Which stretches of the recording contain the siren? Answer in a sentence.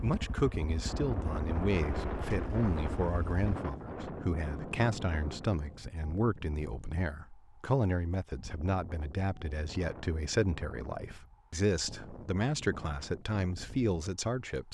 You can't hear the siren here.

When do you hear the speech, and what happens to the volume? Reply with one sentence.
The speech can be heard from 0.0 to 14.6 s, at a steady volume.